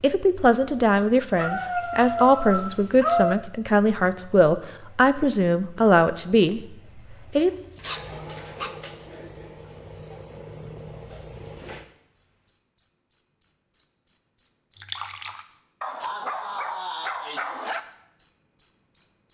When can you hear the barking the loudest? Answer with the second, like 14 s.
3 s.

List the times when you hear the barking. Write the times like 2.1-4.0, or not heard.
1.4-3.4, 7.3-8.8, 15.8-17.8.